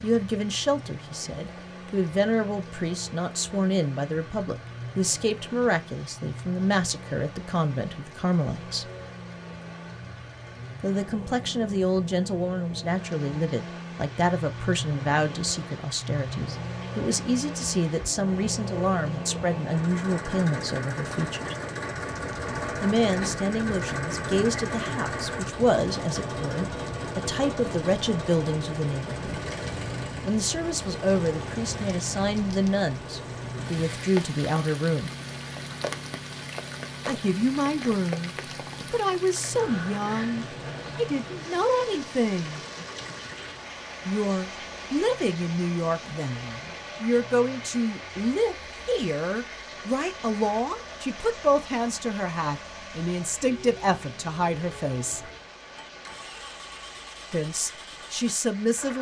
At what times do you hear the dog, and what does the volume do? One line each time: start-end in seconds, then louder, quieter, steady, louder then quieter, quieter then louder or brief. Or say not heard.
not heard.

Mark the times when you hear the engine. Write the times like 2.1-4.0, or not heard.
0.0-58.9.